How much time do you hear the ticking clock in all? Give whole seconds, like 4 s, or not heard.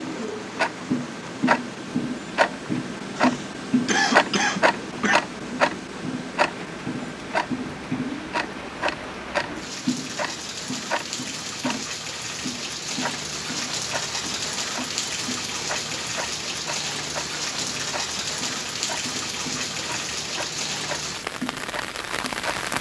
23 s.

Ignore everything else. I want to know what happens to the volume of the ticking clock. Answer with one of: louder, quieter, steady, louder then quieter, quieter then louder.
quieter.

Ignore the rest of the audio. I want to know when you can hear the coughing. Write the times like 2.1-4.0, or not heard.
3.1-5.2.